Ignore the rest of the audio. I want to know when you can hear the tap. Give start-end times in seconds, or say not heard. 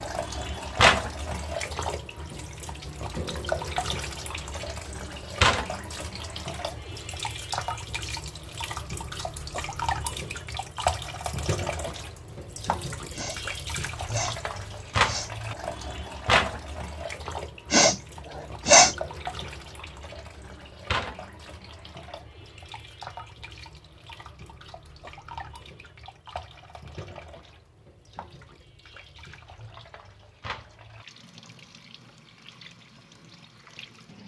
0.0-34.2.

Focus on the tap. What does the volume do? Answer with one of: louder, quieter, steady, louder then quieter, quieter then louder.
quieter.